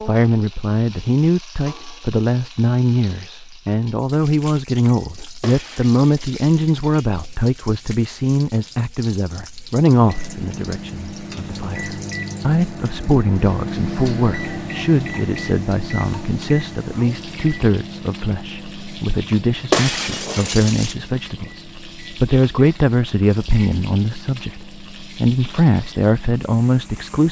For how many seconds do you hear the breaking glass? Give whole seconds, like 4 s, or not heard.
3 s.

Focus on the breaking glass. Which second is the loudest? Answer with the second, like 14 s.
20 s.